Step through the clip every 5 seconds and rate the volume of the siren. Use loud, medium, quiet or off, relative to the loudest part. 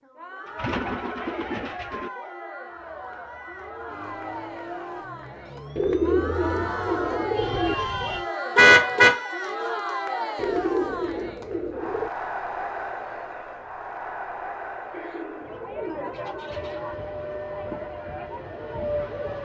medium, medium, off, loud.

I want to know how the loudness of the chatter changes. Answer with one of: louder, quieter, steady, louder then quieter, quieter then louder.
louder then quieter.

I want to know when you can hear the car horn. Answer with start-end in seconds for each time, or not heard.
8.6-9.2.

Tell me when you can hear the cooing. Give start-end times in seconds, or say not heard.
0.5-2.1, 5.8-7.8, 10.3-12.1, 14.9-16.9.